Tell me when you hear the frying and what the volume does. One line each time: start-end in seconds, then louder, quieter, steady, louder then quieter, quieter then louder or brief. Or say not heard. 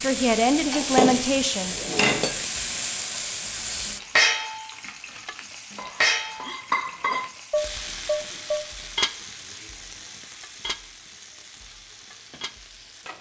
0.0-13.1 quieter.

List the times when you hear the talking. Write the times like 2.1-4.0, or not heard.
0.0-1.9.